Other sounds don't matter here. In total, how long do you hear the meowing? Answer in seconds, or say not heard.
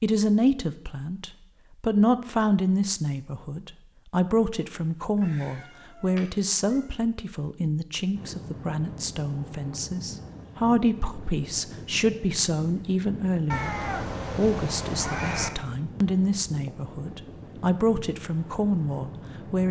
4 s.